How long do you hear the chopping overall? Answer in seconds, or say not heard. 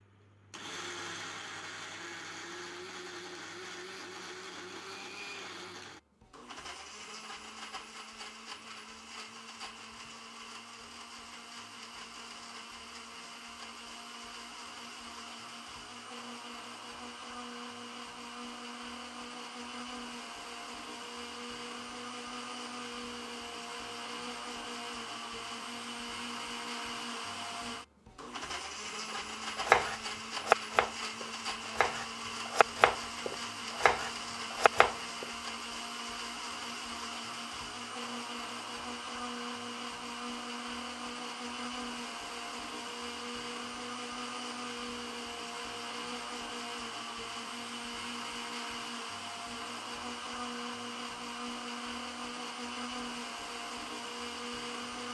6 s.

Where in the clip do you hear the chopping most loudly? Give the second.
30 s.